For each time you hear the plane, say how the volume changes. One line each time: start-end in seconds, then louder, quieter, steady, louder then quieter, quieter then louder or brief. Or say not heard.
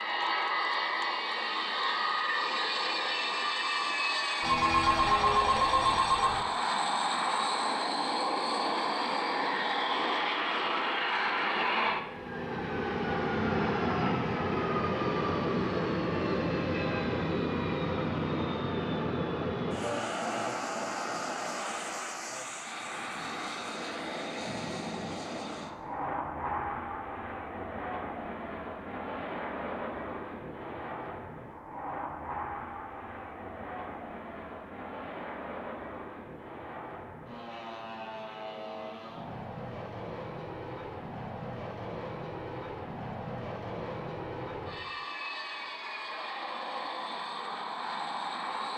0.0-48.7 quieter.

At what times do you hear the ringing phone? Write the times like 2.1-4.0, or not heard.
4.4-6.5.